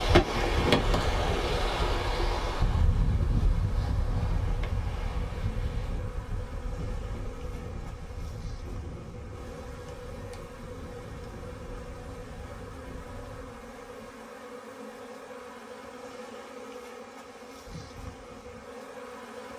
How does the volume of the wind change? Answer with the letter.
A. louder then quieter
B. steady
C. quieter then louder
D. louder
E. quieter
E.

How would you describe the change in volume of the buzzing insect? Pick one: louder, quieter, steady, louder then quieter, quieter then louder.
steady.